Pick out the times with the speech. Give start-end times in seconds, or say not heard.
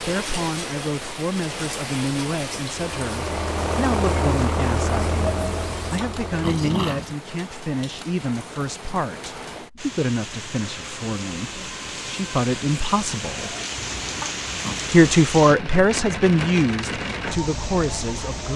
0.0-13.6, 14.9-18.5.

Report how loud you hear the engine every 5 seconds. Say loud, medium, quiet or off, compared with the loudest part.
loud, loud, off, off.